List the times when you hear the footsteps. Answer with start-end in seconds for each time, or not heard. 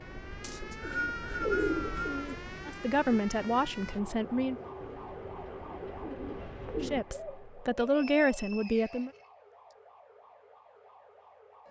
not heard.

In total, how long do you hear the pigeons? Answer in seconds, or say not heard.
8 s.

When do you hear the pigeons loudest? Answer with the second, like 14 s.
2 s.